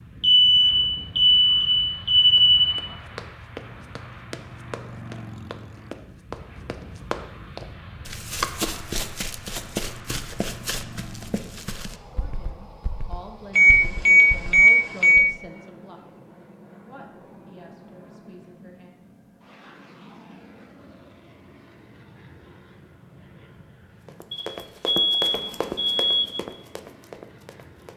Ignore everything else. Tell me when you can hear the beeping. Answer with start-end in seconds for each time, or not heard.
0.2-2.6, 13.6-15.2, 24.3-26.3.